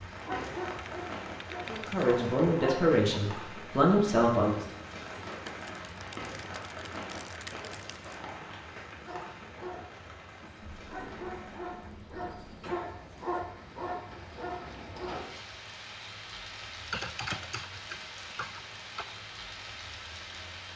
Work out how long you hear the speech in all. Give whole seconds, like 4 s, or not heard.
3 s.